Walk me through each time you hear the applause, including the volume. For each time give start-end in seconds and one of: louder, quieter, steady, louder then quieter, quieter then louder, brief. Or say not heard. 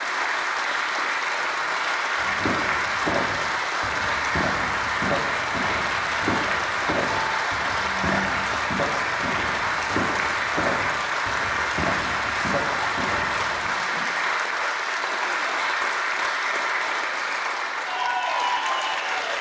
0.0-19.3 steady.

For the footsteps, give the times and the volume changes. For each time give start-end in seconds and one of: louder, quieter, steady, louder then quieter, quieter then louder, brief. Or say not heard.
2.1-13.7 steady.